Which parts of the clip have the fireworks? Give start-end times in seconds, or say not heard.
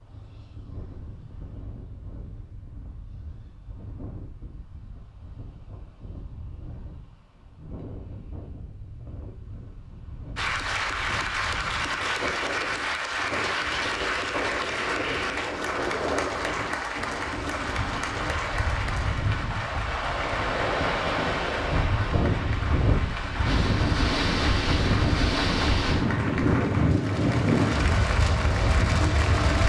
not heard.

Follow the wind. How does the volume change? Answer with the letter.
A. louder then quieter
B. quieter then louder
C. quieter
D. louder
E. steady
D.